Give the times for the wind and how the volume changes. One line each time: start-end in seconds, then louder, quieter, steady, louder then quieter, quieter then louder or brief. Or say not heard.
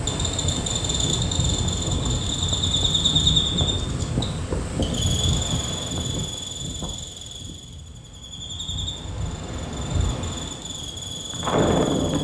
0.0-12.1 quieter then louder.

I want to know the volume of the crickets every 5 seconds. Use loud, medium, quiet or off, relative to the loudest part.
loud, medium, medium.